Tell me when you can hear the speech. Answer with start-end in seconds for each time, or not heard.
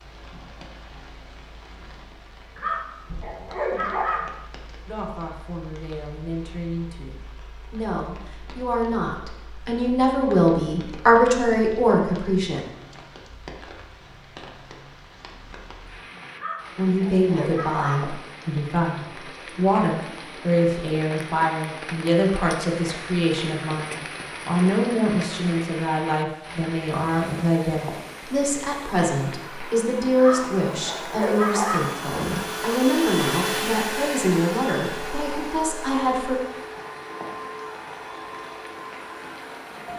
4.8-12.7, 16.8-36.4.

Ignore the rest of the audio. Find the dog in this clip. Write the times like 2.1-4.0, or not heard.
2.5-4.3, 16.4-18.1, 30.1-31.9.